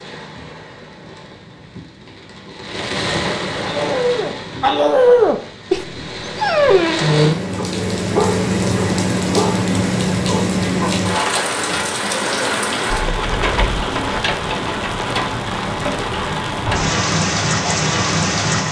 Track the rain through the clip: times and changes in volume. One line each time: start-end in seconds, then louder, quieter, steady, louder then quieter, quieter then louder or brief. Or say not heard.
0.0-18.6 louder.